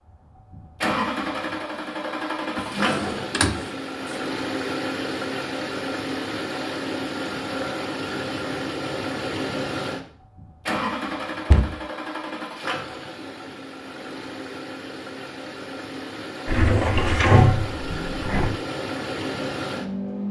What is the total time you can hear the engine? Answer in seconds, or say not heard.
20 s.